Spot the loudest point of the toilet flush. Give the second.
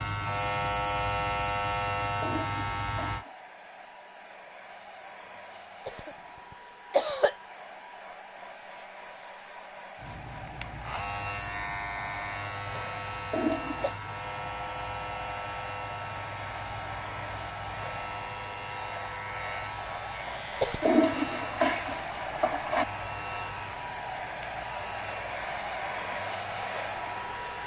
21 s.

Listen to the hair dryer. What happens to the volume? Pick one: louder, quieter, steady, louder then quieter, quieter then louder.
louder.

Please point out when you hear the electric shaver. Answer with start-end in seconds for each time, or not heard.
0.0-3.2, 9.9-27.6.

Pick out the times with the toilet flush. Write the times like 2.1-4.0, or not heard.
2.2-3.4, 13.3-13.9, 20.9-22.9.